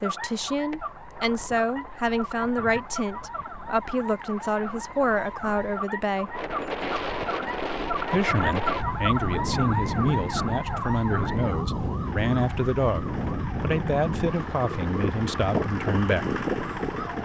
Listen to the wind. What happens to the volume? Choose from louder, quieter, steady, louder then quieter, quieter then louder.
louder.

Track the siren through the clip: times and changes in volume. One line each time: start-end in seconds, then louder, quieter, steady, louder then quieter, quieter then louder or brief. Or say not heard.
0.0-17.1 louder then quieter.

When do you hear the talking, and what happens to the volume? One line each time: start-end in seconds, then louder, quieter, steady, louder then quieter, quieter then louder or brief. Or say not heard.
0.0-6.4 steady
8.1-16.4 steady.